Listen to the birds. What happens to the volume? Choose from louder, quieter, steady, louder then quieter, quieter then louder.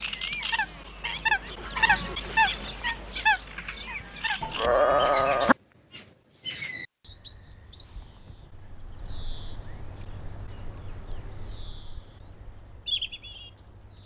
quieter then louder.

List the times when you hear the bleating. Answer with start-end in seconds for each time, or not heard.
4.4-5.5.